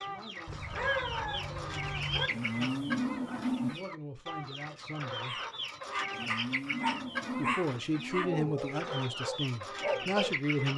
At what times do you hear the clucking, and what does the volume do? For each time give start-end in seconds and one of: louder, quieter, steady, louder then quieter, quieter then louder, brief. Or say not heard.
0.0-10.7 steady.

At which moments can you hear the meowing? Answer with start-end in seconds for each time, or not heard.
0.5-2.3.